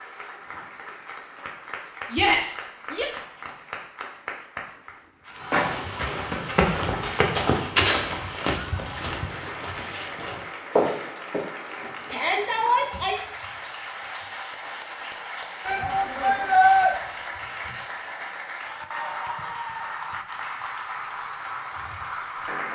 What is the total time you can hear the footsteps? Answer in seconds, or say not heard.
6 s.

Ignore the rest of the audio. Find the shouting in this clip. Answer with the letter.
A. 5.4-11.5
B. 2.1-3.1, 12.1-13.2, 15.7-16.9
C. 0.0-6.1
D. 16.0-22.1
B.